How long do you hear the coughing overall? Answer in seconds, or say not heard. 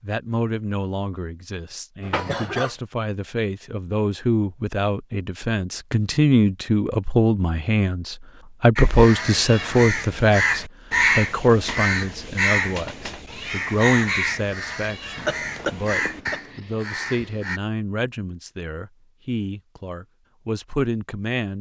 2 s.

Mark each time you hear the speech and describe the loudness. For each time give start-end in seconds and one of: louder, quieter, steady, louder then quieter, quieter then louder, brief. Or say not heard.
0.0-21.5 louder then quieter.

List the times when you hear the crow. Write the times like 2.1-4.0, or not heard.
8.8-17.6.